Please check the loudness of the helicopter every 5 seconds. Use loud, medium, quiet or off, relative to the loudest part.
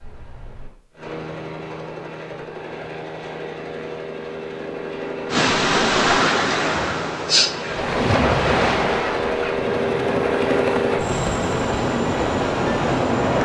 medium, loud, loud.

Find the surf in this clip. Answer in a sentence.
The surf can be heard from 5.3 to 13.3 s.